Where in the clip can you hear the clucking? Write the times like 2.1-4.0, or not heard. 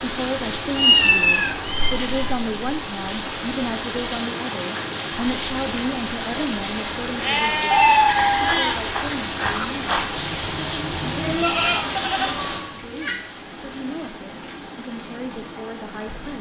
not heard.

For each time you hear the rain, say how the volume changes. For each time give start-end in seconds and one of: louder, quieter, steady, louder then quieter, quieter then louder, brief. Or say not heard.
0.0-16.3 quieter.